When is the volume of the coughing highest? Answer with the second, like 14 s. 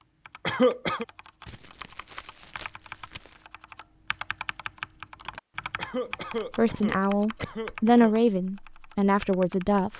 1 s.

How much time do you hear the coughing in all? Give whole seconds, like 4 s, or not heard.
3 s.